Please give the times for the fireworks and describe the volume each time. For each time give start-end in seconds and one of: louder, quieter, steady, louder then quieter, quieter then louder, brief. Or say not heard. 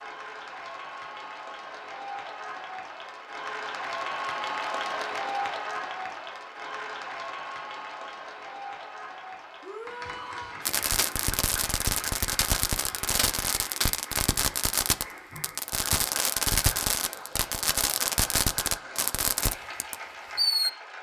10.7-20.7 steady.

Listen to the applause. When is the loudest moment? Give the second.
5 s.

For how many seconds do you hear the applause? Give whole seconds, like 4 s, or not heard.
21 s.